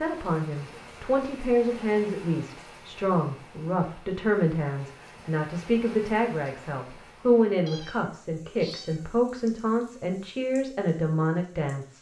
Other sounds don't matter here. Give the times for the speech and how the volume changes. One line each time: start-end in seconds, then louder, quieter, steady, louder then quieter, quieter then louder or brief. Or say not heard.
0.0-11.9 steady.